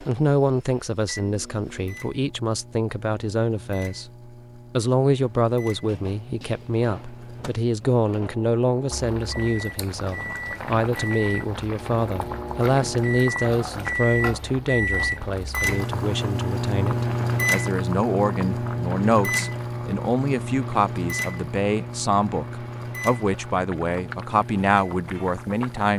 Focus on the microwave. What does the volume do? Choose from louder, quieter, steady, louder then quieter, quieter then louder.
louder then quieter.